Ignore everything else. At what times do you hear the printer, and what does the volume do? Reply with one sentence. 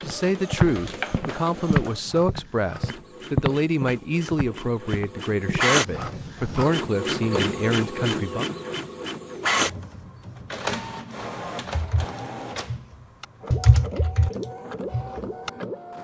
The printer can be heard from 0.0 to 15.9 s, getting louder then quieter.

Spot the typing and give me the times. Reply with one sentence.
The typing can be heard from 11.7 to 15.9 s.